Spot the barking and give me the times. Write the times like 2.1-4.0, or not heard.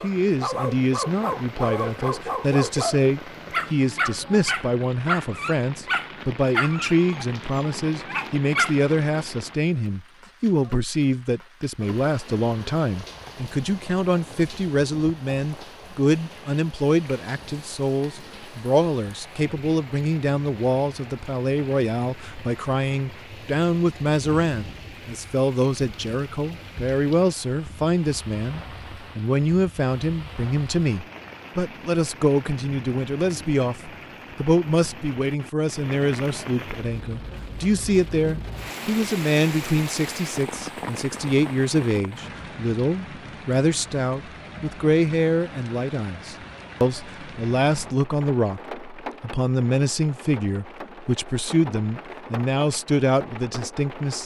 0.0-8.8.